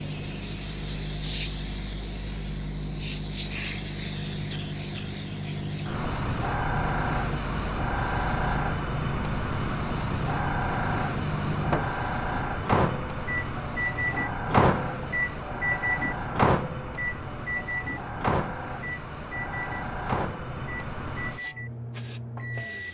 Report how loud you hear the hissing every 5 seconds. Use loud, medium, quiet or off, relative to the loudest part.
loud, loud, loud, medium, medium.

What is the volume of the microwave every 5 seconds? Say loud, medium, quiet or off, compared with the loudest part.
medium, medium, loud, loud, medium.